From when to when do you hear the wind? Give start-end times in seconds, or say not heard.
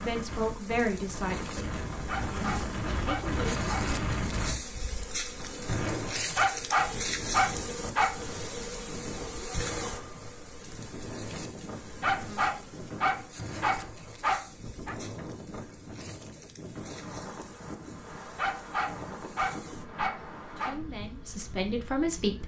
0.0-22.4.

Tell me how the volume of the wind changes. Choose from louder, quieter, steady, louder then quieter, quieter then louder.
quieter.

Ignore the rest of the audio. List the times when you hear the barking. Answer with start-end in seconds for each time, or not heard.
2.0-3.9, 6.3-8.2, 12.0-14.9, 18.4-20.8.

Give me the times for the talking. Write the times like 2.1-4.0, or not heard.
0.0-3.6, 20.6-22.4.